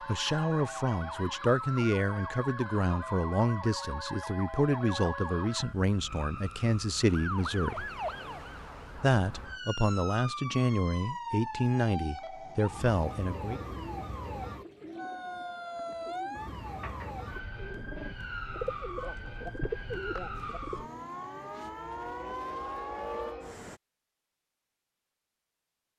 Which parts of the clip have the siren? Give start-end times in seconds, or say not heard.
0.0-23.4.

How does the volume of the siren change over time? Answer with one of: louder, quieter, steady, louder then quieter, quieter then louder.
steady.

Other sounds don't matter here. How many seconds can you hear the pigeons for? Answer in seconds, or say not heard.
7 s.